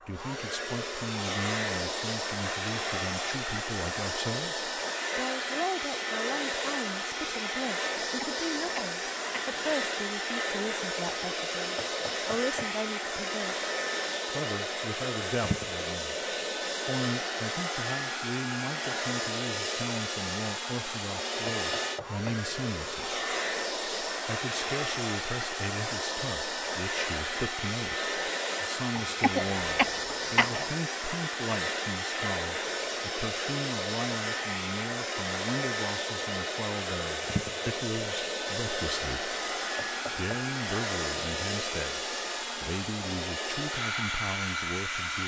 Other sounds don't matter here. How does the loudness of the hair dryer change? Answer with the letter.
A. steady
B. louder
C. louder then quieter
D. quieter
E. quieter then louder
A.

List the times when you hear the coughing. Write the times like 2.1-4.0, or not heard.
7.9-9.7, 28.9-30.7.